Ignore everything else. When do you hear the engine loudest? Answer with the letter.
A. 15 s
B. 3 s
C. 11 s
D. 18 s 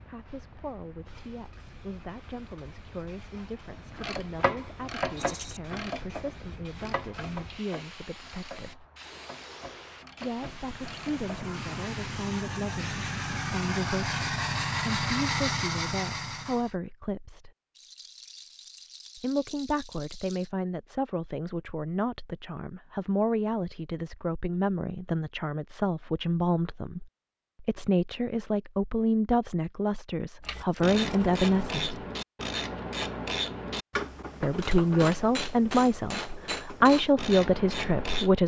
A.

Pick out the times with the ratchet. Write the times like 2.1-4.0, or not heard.
3.7-11.5, 30.4-38.4.